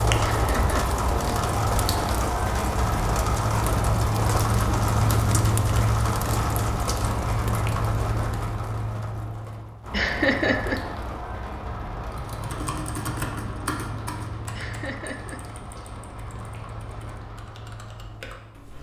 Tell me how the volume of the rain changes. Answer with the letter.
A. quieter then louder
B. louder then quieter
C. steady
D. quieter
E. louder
D.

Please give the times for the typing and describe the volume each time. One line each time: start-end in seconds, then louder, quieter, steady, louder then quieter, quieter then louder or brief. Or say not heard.
12.1-18.7 quieter then louder.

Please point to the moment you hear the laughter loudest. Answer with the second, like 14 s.
10 s.